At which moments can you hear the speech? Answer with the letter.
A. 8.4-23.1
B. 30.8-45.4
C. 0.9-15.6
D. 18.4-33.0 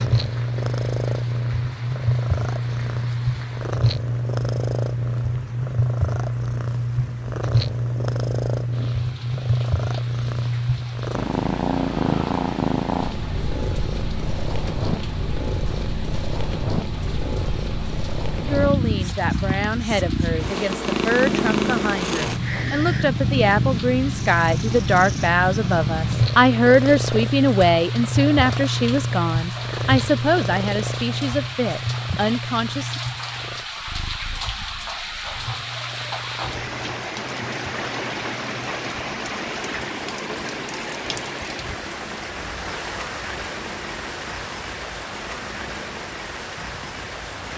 D.